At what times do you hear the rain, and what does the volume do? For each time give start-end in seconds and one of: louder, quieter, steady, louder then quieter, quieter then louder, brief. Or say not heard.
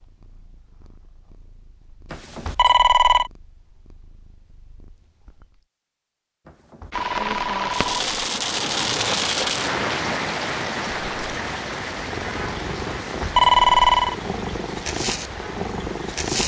6.9-16.4 quieter.